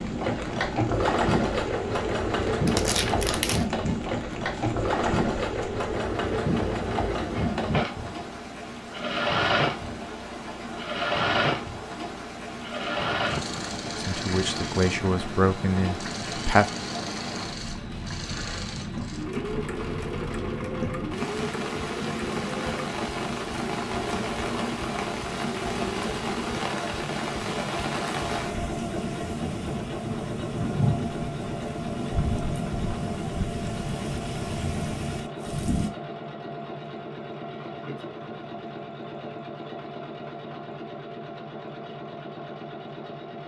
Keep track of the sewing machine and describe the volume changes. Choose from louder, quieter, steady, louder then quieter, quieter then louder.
quieter.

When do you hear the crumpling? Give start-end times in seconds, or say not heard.
2.6-3.6.